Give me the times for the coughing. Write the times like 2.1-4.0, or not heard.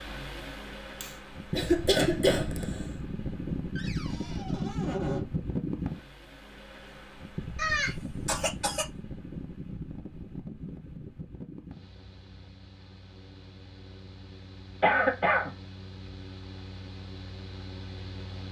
1.0-2.9, 7.5-8.8, 14.8-15.5.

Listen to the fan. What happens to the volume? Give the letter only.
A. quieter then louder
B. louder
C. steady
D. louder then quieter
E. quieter
E.